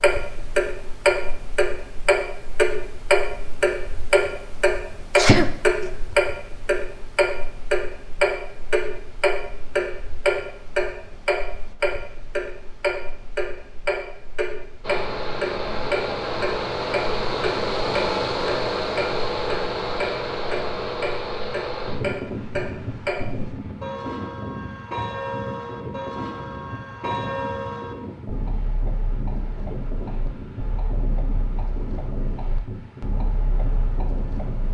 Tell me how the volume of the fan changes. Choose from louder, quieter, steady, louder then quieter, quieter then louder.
quieter.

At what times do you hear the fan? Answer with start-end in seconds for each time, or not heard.
14.8-34.6.